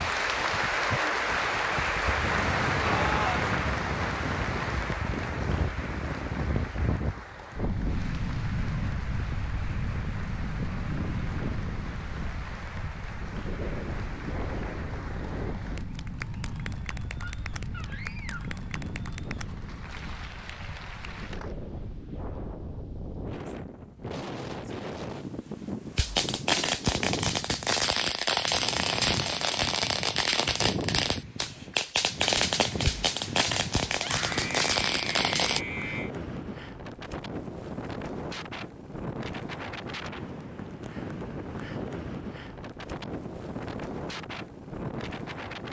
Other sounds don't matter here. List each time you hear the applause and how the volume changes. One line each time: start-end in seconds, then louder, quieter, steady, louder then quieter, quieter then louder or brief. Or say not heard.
0.0-21.6 quieter.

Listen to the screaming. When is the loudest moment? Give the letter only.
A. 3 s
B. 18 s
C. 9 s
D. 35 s
A.